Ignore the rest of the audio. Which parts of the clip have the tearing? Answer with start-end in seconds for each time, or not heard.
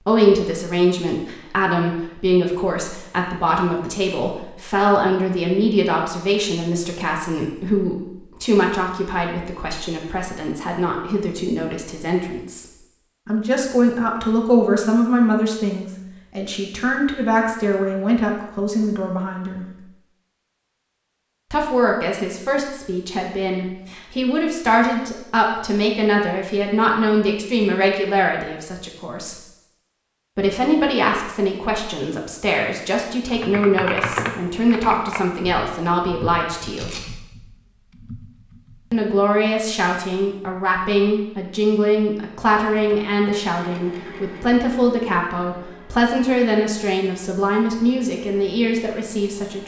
36.6-37.0.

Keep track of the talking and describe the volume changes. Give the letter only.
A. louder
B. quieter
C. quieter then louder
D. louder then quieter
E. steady
E.